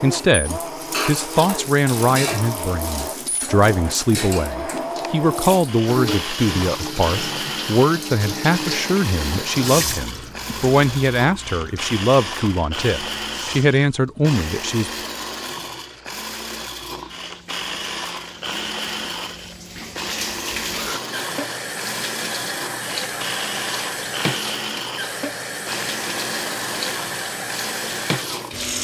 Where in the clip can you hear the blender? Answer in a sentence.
You can hear the blender from 0.0 to 28.7 s.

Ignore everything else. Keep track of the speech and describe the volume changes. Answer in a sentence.
The volume of the speech stays about the same.